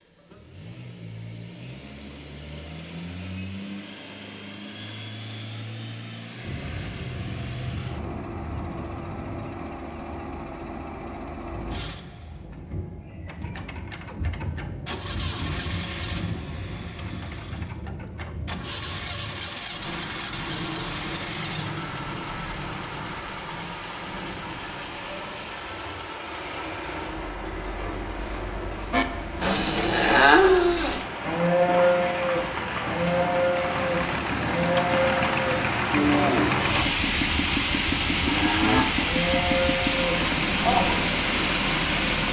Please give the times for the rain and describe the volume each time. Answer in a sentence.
You can hear the rain from 6.4 to 42.2 s, getting louder.